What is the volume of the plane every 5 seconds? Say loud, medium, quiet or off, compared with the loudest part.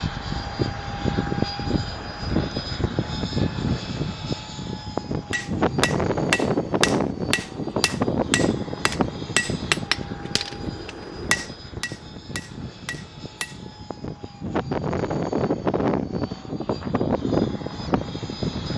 loud, loud, medium, loud.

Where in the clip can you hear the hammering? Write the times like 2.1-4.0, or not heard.
5.3-13.8.